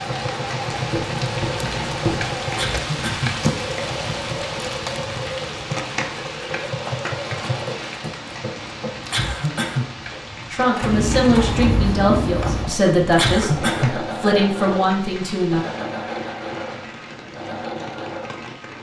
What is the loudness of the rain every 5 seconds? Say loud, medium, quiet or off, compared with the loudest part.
loud, loud, medium, medium.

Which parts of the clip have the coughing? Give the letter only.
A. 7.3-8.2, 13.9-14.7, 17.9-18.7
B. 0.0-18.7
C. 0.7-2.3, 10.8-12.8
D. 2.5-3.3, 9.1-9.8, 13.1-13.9
D.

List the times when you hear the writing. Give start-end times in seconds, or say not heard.
0.7-2.3, 10.8-12.8.